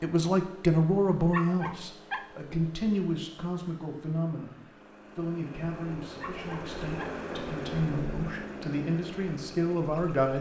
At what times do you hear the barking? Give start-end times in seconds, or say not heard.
1.3-2.2, 6.2-7.2.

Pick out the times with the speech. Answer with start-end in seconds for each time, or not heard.
0.0-10.3.